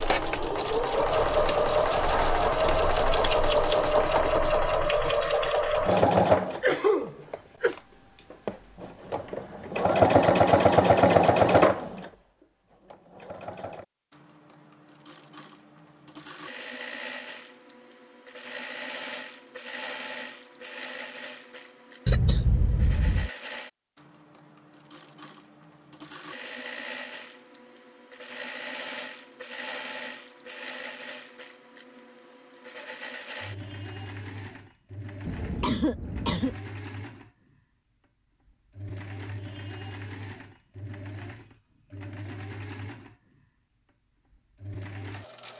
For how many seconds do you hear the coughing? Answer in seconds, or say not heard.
4 s.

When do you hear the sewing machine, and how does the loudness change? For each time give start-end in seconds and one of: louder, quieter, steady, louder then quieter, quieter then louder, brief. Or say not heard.
0.0-45.5 quieter.